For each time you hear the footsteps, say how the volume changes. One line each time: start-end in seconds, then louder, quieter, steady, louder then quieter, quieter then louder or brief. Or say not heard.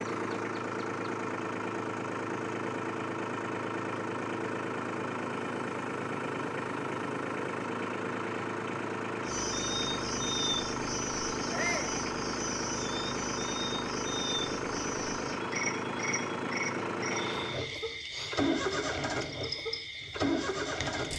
not heard.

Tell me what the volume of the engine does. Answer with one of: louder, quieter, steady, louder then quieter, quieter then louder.
steady.